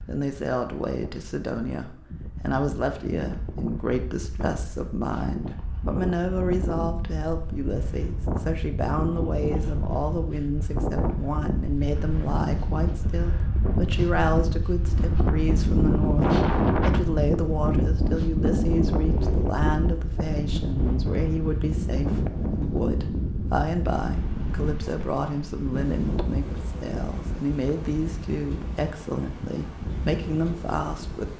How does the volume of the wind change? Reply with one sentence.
The volume of the wind goes up, then down.